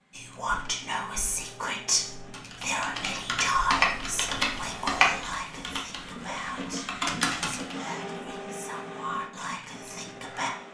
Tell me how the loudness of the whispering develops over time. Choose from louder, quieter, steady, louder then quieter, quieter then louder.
quieter.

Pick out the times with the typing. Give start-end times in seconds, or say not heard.
2.3-8.0.